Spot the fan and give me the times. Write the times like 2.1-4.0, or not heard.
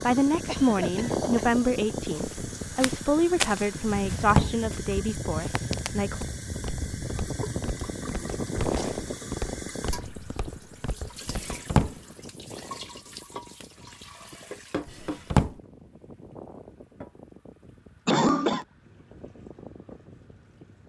0.0-20.8.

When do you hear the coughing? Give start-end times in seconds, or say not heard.
0.5-1.5, 18.1-18.6.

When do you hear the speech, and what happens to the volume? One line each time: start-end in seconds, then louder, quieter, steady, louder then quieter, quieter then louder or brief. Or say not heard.
0.0-6.2 quieter.